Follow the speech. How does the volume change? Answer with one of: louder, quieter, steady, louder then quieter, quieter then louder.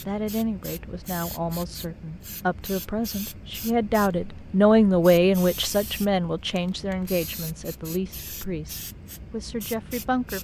louder then quieter.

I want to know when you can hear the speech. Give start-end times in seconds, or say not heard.
0.1-10.4.